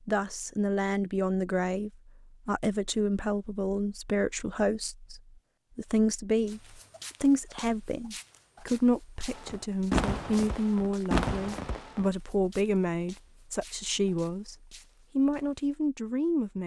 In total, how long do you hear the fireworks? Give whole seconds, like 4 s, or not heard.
3 s.